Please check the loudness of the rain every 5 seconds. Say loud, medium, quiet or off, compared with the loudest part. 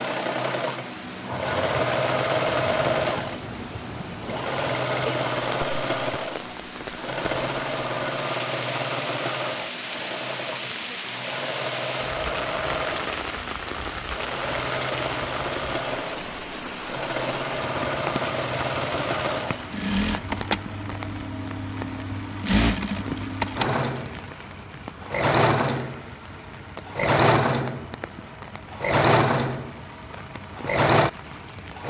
medium, loud, loud, loud, medium, medium, medium.